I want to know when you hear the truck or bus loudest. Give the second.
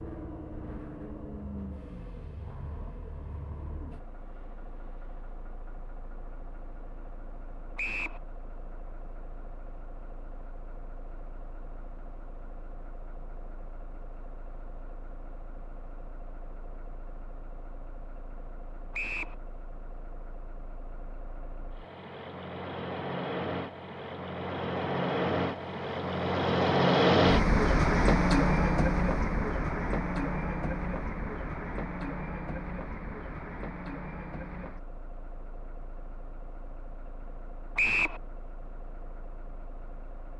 27 s.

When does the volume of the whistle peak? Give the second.
38 s.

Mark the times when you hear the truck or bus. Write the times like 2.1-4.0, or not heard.
0.0-40.3.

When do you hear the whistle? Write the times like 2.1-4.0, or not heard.
7.8-8.2, 18.9-19.4, 37.8-38.2.